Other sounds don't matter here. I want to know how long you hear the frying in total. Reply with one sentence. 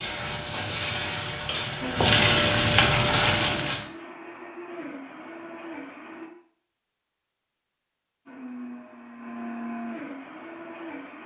You can hear the frying for 4 seconds altogether.